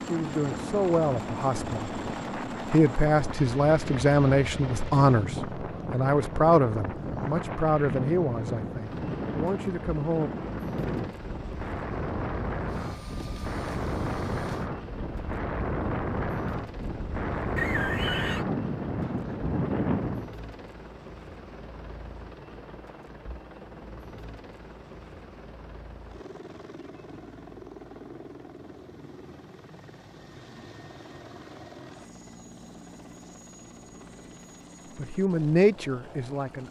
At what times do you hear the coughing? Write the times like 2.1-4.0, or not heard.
17.6-18.4.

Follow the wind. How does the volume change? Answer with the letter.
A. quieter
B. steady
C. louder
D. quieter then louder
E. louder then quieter
C.